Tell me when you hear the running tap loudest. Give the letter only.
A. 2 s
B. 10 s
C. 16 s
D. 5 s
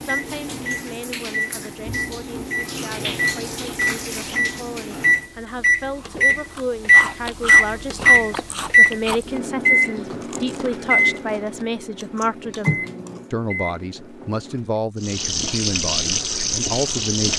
C.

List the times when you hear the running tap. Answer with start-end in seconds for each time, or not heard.
0.0-5.3, 15.0-17.3.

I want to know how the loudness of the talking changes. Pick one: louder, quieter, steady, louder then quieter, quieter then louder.
louder.